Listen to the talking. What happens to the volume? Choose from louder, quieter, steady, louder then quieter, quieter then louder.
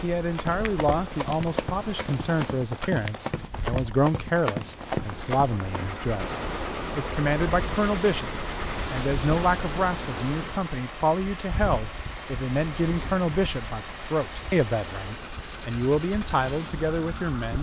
steady.